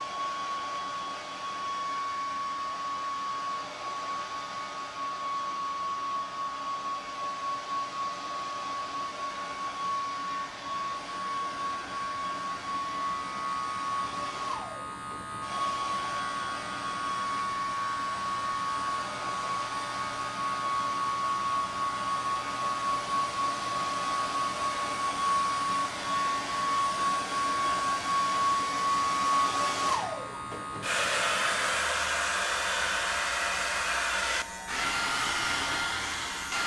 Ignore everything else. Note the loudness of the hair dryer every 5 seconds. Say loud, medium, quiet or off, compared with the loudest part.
medium, medium, medium, medium, loud, loud, loud, loud.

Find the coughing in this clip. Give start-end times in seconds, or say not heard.
not heard.